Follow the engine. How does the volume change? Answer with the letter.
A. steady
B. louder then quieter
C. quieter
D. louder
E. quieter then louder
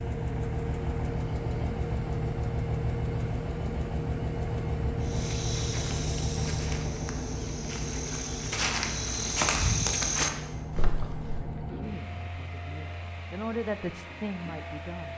C.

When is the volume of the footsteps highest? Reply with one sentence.
The volume of the footsteps peaks at 10 seconds.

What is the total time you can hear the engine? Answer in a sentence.
The engine can be heard for 15 seconds in total.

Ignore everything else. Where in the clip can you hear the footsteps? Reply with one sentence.
The footsteps can be heard from 5.0 to 11.4 s.